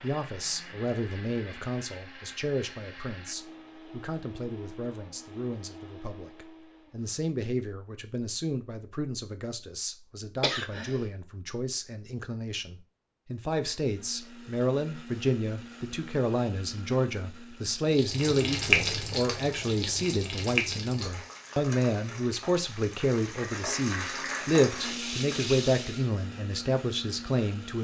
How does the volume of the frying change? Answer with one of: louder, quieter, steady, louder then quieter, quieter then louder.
quieter then louder.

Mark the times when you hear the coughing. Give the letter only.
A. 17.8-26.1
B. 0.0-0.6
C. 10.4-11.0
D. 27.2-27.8
C.